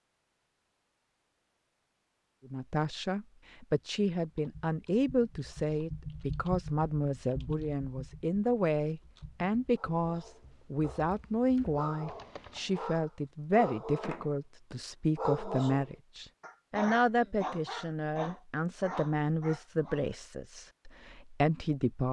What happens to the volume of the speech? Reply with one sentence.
The loudness of the speech stays about the same.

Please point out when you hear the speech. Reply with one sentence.
You can hear the speech from 2.5 to 22.0 s.